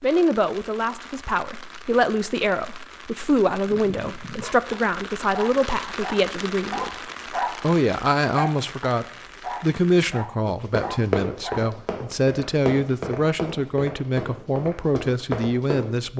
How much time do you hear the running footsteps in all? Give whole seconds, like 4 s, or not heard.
5 s.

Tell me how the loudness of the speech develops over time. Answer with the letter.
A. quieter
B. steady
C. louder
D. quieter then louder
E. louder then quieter
B.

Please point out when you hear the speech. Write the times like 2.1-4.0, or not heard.
0.0-16.1.